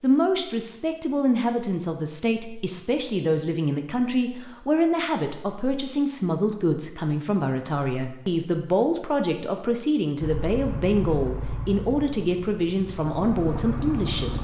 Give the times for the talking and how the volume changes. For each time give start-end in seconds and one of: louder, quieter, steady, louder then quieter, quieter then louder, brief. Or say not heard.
0.0-14.3 steady.